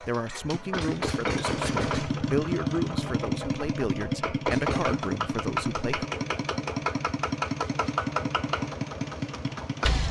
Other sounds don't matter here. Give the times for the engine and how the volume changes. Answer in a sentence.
You can hear the engine from 0.0 to 10.0 s, at a steady volume.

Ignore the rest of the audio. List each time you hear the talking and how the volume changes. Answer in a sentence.
You can hear the talking from 0.0 to 6.1 s, at a steady volume.